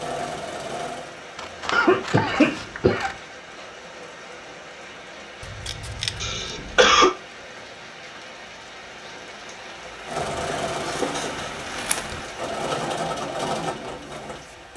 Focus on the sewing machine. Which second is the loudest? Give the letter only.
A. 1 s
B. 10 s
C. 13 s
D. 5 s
C.